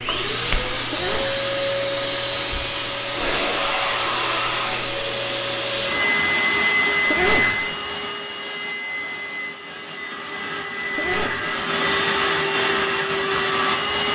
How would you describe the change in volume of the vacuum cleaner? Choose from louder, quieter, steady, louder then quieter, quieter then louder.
quieter then louder.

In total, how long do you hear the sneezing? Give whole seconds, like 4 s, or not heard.
2 s.